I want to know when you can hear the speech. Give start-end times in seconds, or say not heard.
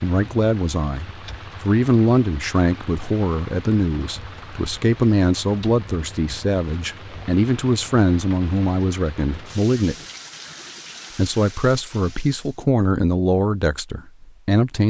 0.0-9.9, 11.2-14.8.